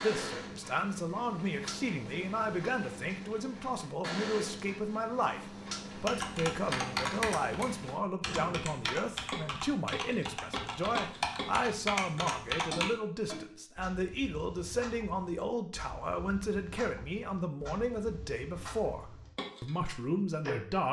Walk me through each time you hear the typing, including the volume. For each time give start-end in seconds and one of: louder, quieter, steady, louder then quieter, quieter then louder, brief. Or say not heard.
6.0-12.9 quieter then louder.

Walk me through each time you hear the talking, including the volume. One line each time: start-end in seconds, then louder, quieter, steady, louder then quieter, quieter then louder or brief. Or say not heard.
0.0-20.8 steady.